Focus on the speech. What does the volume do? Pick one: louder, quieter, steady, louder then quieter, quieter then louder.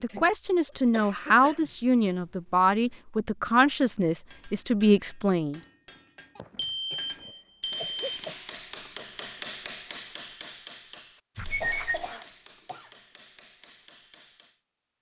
steady.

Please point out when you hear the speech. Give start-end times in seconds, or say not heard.
0.0-5.6.